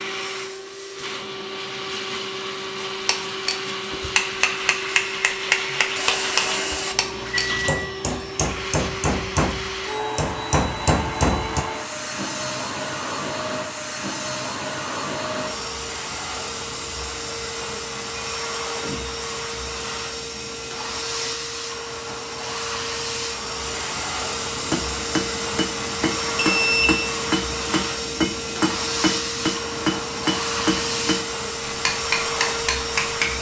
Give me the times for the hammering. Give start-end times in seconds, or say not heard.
3.0-11.6, 24.6-33.3.